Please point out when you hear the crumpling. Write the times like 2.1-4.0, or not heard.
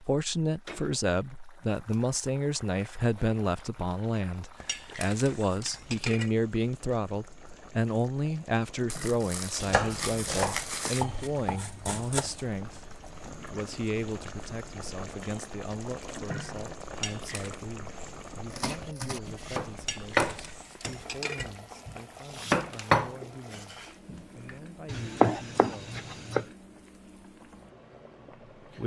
8.8-11.1.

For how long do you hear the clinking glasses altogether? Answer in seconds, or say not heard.
4 s.